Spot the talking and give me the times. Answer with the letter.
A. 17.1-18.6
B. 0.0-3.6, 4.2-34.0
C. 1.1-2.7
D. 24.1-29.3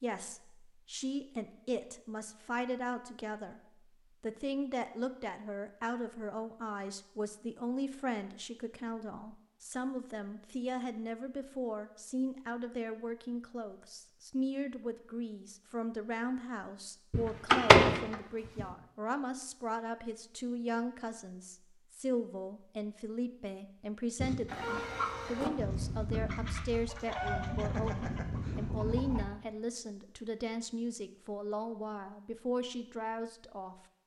B.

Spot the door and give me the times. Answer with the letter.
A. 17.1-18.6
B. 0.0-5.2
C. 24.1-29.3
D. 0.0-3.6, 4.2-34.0
A.